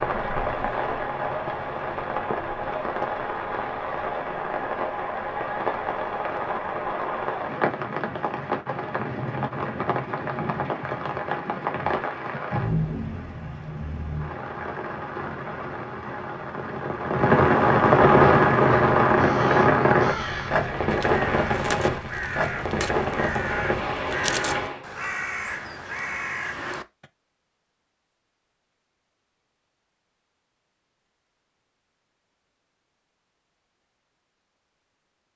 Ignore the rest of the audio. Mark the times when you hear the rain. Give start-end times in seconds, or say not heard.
0.0-24.9.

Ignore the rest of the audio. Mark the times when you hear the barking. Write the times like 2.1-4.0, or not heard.
not heard.